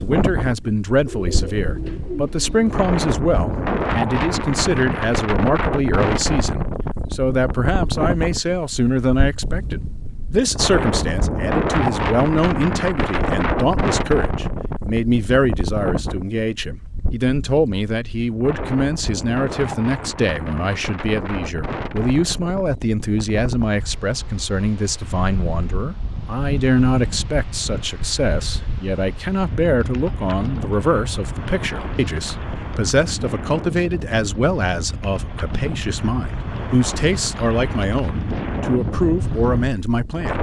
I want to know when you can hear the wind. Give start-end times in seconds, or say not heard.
0.0-40.3.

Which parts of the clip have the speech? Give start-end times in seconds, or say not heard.
0.0-40.3.